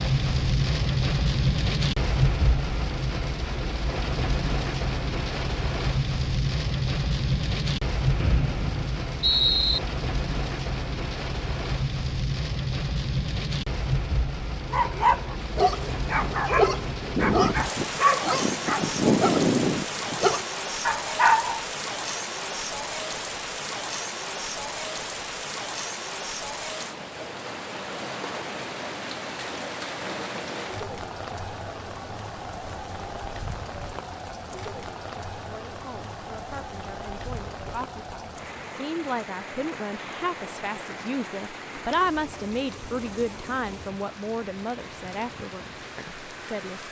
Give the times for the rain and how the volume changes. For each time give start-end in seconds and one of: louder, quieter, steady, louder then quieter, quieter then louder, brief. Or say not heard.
0.0-46.8 quieter.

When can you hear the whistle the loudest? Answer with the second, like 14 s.
9 s.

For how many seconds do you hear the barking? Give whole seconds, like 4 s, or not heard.
7 s.